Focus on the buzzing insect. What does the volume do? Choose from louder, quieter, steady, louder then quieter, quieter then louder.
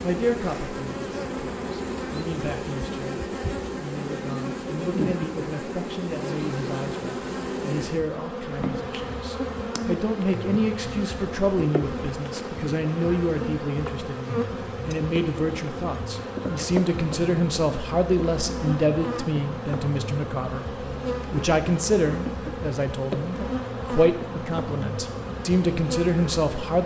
steady.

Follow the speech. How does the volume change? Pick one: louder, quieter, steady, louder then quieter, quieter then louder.
louder.